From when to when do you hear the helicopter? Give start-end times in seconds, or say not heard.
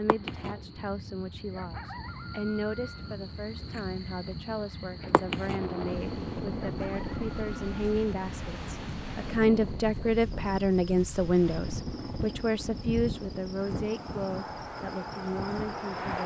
5.5-9.8, 11.6-14.3.